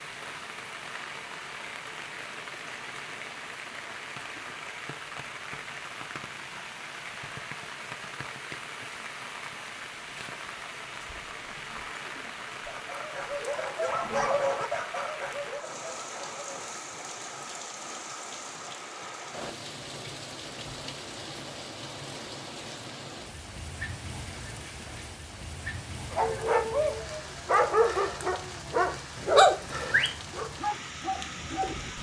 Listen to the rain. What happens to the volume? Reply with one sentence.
The loudness of the rain stays about the same.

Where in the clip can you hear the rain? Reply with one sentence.
The rain can be heard from 0.0 to 31.9 s.